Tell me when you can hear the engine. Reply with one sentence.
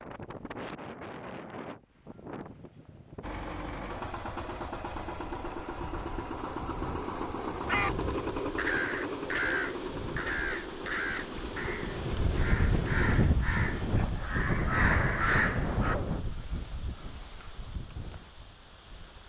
The engine can be heard from 3.2 to 13.1 s.